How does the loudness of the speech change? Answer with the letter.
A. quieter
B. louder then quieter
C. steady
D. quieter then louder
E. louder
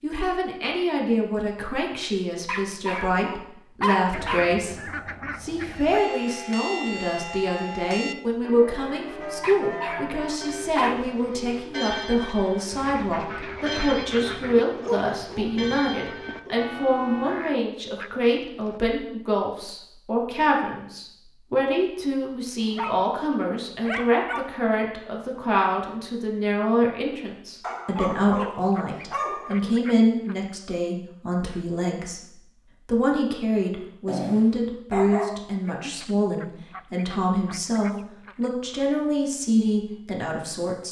C.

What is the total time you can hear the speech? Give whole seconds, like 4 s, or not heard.
41 s.